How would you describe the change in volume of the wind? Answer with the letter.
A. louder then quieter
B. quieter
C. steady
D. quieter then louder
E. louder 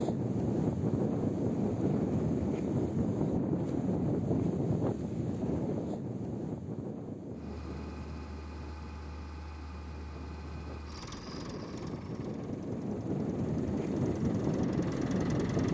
D.